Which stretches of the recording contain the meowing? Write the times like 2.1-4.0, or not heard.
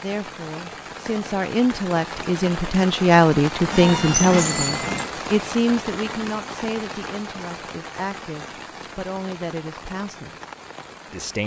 3.7-5.1.